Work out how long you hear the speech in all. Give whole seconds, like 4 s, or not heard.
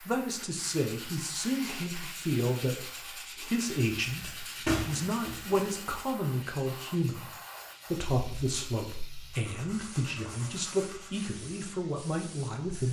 12 s.